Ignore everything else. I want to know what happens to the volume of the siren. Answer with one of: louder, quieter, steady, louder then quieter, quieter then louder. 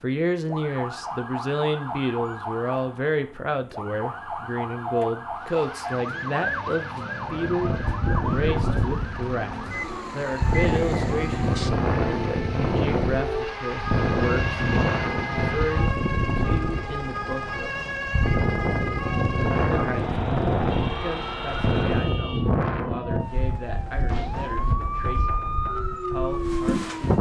steady.